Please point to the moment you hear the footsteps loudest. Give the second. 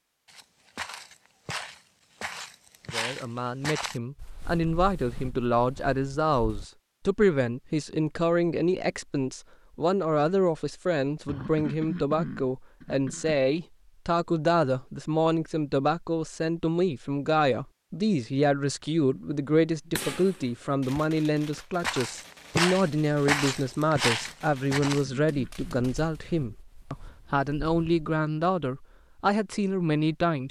23 s.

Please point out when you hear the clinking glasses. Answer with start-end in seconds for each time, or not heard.
not heard.